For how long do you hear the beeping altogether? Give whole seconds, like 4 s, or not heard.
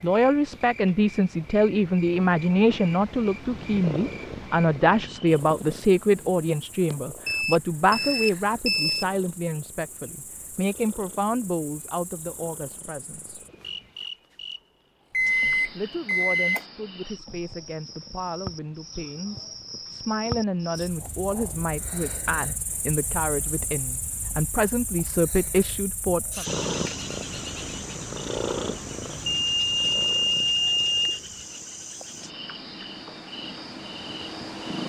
5 s.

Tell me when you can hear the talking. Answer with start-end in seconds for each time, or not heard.
0.0-13.4, 15.8-26.4.